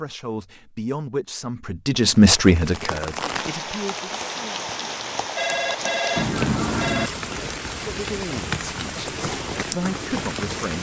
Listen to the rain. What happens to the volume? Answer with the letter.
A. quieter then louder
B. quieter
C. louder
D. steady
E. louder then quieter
D.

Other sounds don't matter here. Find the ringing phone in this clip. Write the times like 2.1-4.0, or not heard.
5.3-7.1.